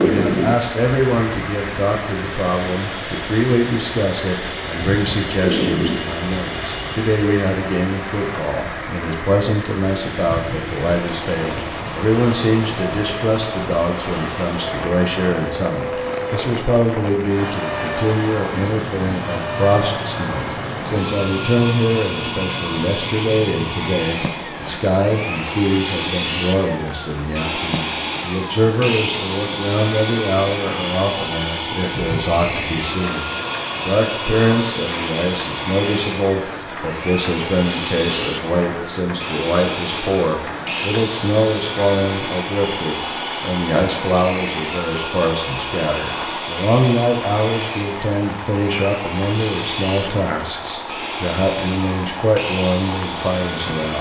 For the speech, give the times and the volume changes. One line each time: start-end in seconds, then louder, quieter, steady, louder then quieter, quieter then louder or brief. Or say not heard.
0.0-53.9 steady.